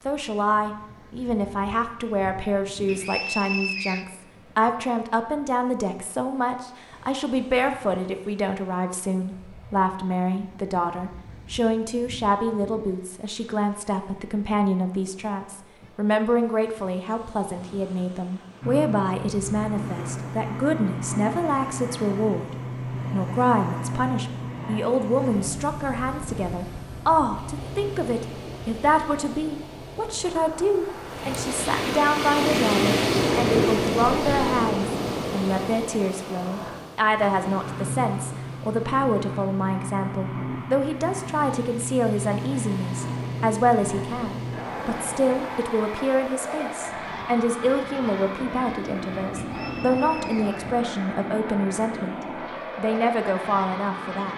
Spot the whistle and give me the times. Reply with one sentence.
The whistle can be heard from 2.9 to 4.0 s and from 49.4 to 50.6 s.